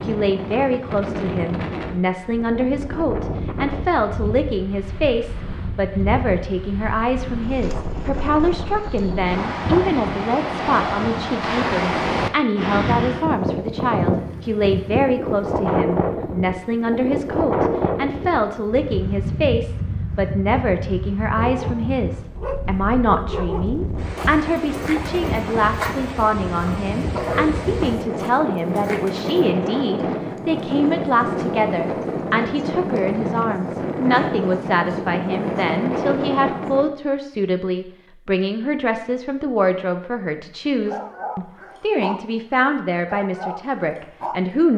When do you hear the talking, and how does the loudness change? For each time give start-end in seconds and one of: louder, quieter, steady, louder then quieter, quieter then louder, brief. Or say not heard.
0.0-44.7 steady.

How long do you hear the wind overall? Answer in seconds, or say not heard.
37 s.